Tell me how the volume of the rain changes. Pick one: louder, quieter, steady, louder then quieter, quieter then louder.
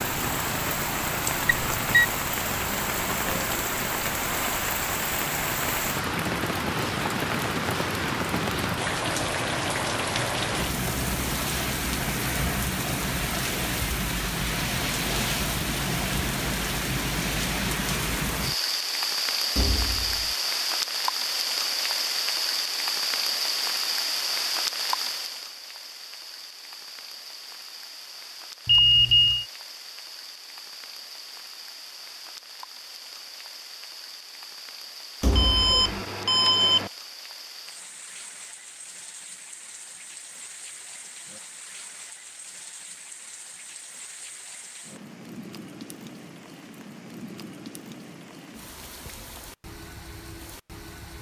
quieter.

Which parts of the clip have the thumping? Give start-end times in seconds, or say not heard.
19.6-20.4, 35.2-35.8.